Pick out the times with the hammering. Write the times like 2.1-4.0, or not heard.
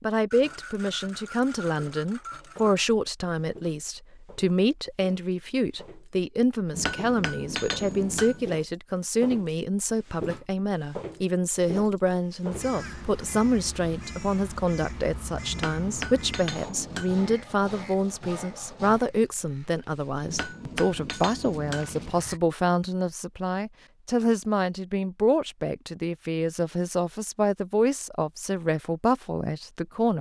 6.7-8.5, 15.5-17.4, 20.2-22.1.